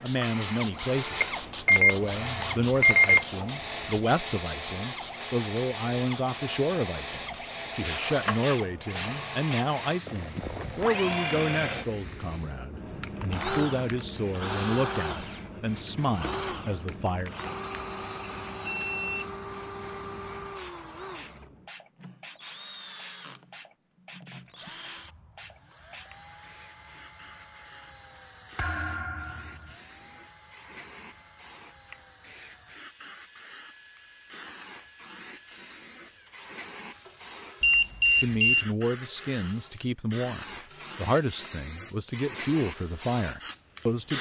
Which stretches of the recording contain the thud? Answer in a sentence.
You can hear the thud from 28.6 to 29.8 s.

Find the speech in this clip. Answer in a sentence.
The speech can be heard from 0.0 to 17.4 s and from 38.2 to 44.1 s.